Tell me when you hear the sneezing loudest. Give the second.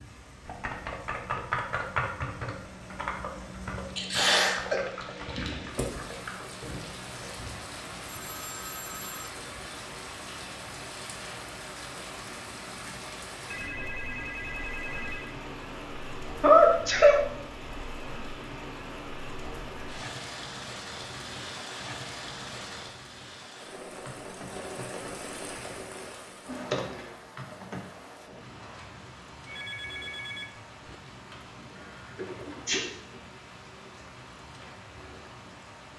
17 s.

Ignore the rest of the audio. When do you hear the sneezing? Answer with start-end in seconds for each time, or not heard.
4.0-4.8, 16.4-17.2, 32.1-32.9.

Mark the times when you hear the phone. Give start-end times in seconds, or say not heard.
7.3-9.3, 13.5-15.3, 29.4-30.9.